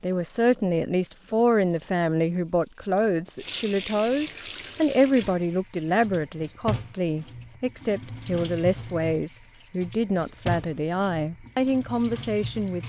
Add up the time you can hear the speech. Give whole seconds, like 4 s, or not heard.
13 s.